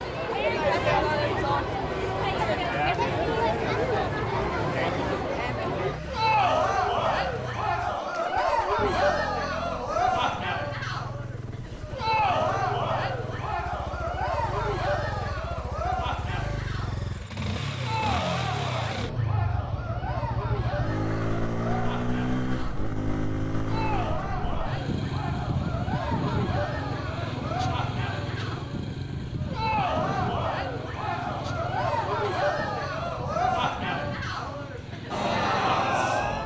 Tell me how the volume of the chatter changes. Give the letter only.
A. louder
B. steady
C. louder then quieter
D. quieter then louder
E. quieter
D.